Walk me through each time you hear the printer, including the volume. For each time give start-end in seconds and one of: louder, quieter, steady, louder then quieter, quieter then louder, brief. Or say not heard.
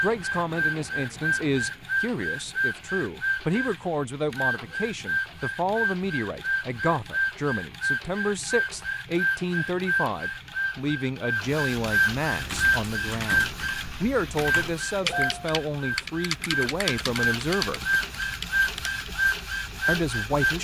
0.0-20.5 steady.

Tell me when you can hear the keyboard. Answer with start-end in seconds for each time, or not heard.
12.3-19.1.